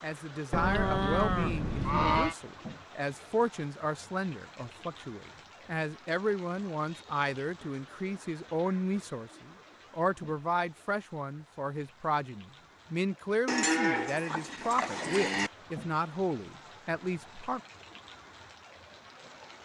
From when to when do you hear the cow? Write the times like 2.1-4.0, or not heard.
0.5-2.4, 13.4-15.5.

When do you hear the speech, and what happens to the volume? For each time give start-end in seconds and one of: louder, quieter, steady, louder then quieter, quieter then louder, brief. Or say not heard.
0.0-17.6 steady.